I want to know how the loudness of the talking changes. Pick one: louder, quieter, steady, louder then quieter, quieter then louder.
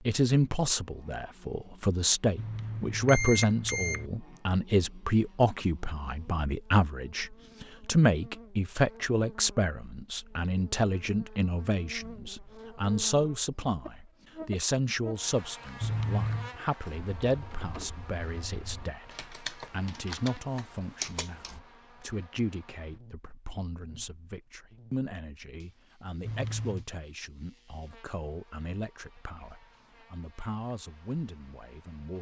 quieter.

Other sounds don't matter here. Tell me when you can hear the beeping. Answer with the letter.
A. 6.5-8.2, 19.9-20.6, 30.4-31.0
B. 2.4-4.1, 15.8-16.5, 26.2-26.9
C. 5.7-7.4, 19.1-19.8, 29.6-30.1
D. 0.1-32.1
B.